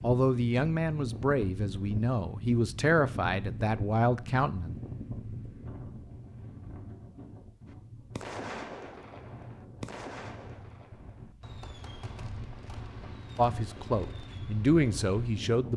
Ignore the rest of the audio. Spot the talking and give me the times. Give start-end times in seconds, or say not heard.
0.0-4.8, 13.3-15.7.